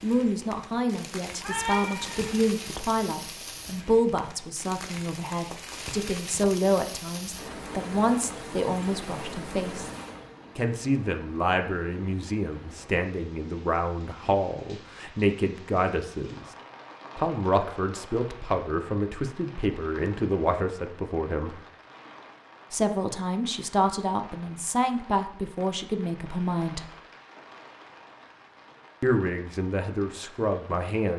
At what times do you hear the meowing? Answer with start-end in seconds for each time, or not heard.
1.4-2.4.